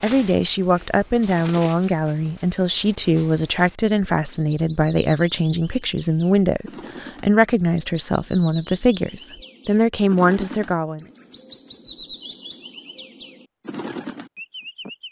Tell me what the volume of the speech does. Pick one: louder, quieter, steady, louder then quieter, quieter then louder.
steady.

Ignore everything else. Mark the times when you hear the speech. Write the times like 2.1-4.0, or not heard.
0.0-11.1.